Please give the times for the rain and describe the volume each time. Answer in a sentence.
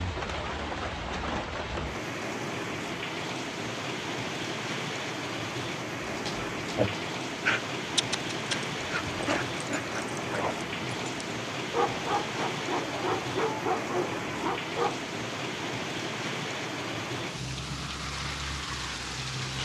The rain can be heard from 0.0 to 19.6 s, at a steady volume.